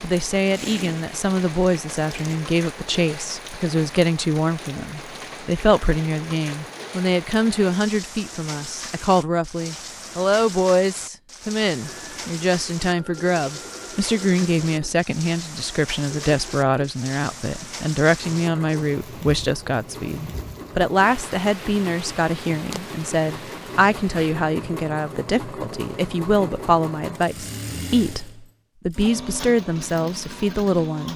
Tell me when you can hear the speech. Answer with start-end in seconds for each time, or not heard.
0.0-31.1.